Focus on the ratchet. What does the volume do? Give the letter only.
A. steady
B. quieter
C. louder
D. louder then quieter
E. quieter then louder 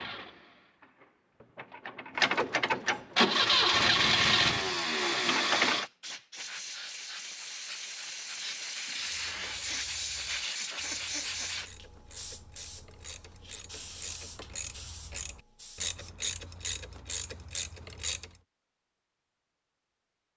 C.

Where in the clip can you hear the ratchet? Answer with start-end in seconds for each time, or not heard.
9.1-18.4.